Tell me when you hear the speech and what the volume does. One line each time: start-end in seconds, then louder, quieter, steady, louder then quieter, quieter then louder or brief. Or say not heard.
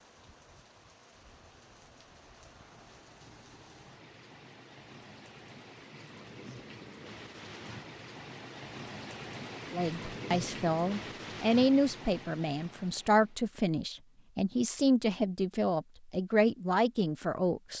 9.7-17.7 steady.